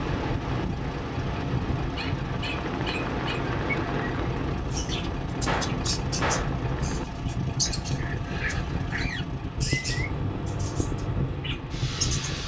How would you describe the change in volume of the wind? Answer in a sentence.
The volume of the wind stays about the same.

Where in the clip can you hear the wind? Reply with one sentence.
The wind can be heard from 0.0 to 12.4 s.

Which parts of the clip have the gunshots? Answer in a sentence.
You can hear the gunshots from 5.5 to 6.6 s.